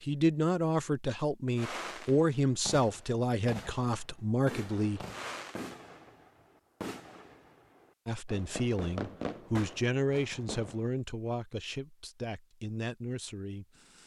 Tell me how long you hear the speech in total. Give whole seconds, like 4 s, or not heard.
11 s.